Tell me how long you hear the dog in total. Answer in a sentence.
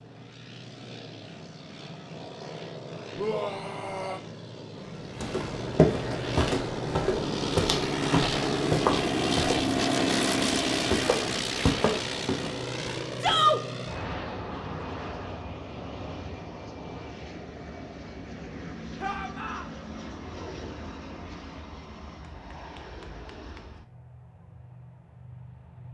You can't hear the dog here.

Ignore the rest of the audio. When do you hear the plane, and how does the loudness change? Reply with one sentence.
The plane can be heard from 0.0 to 25.8 s, getting louder then quieter.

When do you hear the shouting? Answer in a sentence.
The shouting can be heard from 3.1 to 4.2 s, from 13.2 to 13.6 s and from 19.0 to 19.6 s.